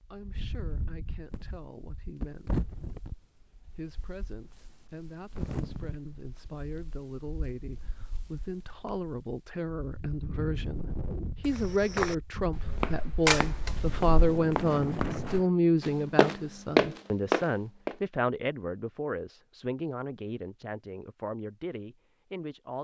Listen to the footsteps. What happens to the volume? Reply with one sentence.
The volume of the footsteps goes down, then up.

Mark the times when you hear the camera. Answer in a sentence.
The camera can be heard from 13.2 to 14.4 s.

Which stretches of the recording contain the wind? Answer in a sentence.
The wind can be heard from 0.1 to 15.5 s.